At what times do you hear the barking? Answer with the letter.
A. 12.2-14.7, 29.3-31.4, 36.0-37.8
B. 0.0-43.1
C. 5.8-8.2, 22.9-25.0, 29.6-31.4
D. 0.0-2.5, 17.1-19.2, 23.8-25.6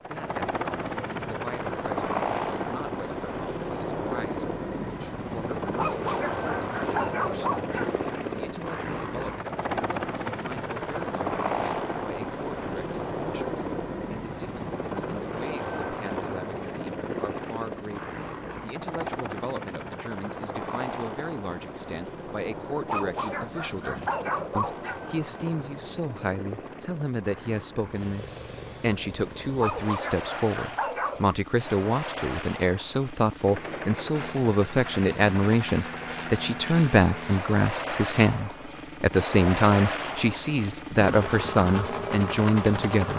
C.